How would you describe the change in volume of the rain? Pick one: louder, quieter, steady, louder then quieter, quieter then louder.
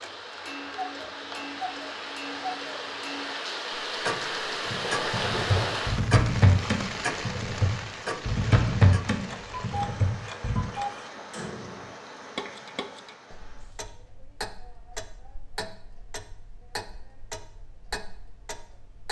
louder then quieter.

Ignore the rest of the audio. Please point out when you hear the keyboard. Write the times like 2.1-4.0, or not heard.
4.7-10.7.